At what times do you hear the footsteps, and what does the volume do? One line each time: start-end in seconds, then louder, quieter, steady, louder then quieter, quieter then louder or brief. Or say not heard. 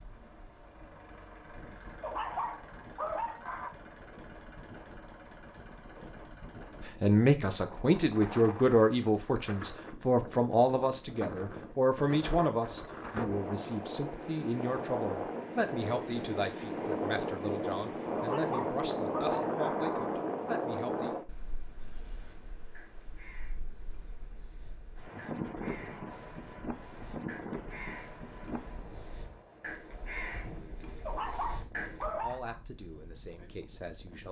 not heard.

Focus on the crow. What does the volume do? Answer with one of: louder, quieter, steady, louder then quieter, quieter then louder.
louder.